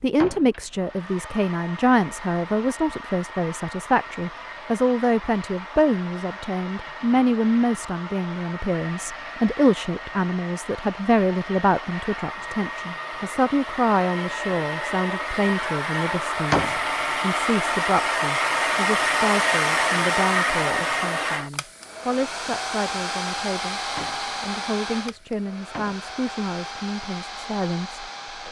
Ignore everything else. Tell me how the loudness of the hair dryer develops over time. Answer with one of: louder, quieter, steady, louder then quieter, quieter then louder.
louder then quieter.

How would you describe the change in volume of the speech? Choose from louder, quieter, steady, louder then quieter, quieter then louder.
quieter.